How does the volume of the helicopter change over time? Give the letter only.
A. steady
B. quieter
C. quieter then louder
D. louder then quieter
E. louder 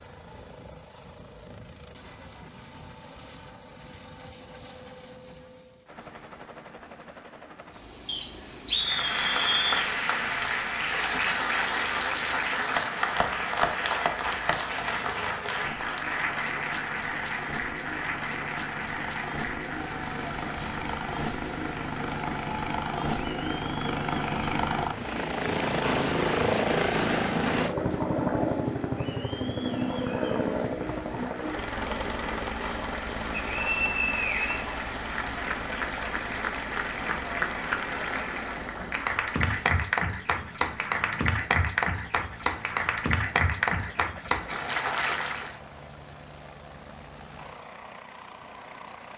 D.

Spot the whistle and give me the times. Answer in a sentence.
The whistle can be heard from 8.1 to 9.8 s and from 33.3 to 34.6 s.